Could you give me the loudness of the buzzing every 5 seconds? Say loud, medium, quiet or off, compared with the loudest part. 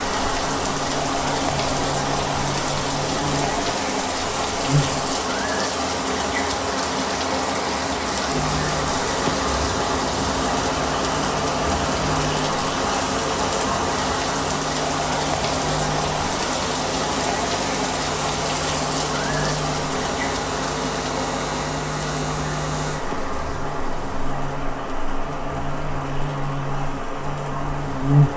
medium, medium, medium, medium, medium, loud.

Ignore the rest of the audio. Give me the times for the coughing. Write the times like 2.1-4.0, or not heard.
not heard.